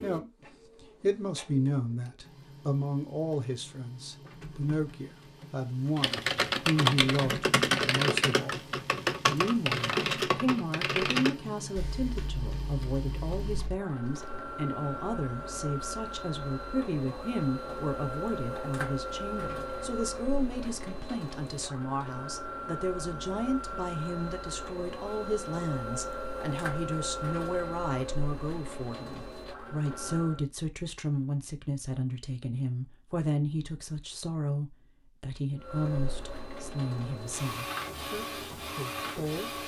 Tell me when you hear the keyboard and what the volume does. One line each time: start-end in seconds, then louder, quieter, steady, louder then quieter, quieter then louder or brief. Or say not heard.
6.0-14.4 quieter.